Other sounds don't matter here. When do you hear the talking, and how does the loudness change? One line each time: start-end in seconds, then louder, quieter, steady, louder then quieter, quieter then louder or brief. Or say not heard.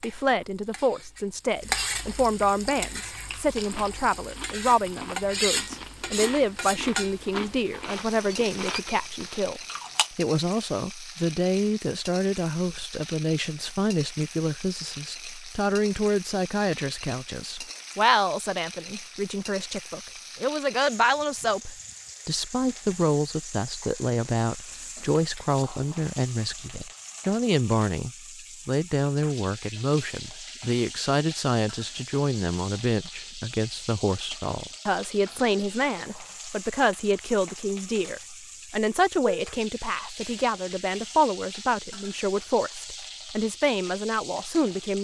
0.0-44.9 steady.